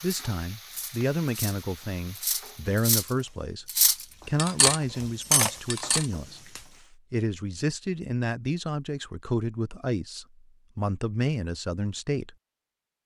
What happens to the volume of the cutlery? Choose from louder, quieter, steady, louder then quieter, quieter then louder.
louder.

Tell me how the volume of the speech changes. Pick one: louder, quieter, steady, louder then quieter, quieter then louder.
steady.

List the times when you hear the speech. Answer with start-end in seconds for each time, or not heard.
0.0-3.6, 4.2-12.3.